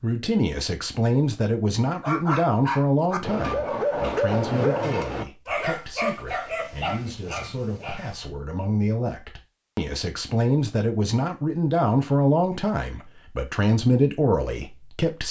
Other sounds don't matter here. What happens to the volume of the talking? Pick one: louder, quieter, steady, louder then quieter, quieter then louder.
quieter then louder.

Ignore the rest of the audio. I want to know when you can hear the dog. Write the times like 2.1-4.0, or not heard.
2.0-8.2.